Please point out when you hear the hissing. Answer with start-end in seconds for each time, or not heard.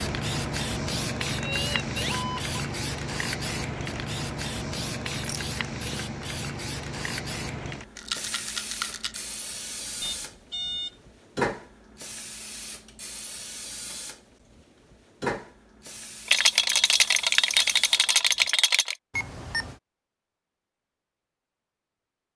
0.0-18.6.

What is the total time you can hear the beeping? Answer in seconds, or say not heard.
3 s.